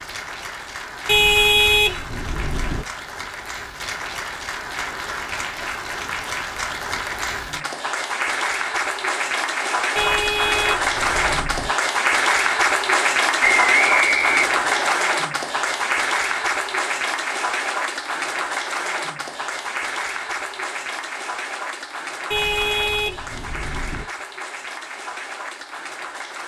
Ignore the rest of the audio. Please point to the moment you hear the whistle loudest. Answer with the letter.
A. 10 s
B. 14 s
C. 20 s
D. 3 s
B.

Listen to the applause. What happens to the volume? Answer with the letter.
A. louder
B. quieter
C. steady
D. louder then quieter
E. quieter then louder
D.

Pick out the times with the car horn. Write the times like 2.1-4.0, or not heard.
1.1-2.9, 9.9-11.7, 22.3-24.1.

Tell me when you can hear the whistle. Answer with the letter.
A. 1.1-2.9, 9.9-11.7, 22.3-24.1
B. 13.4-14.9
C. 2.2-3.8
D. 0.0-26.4
B.